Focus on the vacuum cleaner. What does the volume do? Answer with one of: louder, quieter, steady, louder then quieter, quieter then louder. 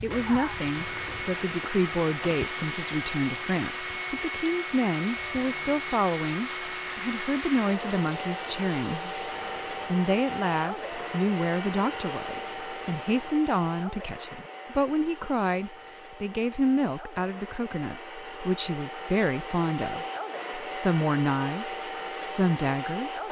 quieter then louder.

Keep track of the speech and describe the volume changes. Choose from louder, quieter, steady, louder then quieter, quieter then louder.
steady.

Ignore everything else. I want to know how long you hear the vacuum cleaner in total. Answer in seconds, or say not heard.
23 s.